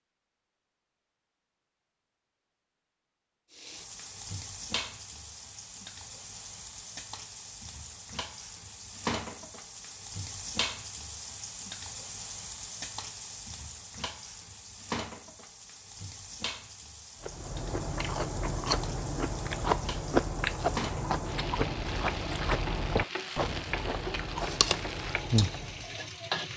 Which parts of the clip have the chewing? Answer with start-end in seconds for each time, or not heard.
17.2-25.9.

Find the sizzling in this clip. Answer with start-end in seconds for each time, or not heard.
3.5-26.5.